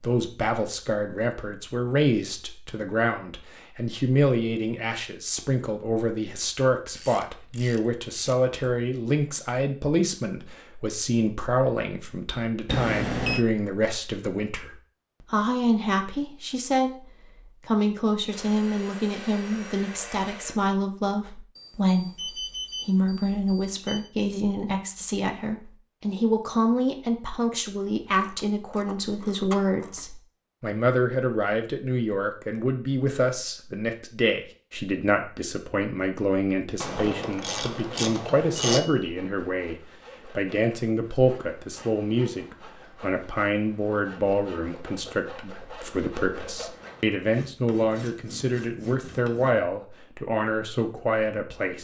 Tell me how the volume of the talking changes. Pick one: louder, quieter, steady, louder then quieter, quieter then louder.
steady.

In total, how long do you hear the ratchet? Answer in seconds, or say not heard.
6 s.